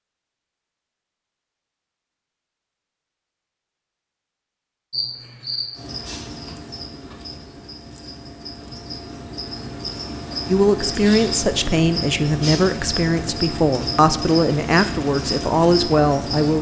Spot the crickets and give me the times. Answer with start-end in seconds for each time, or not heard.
4.9-16.5.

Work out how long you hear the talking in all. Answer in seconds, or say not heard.
6 s.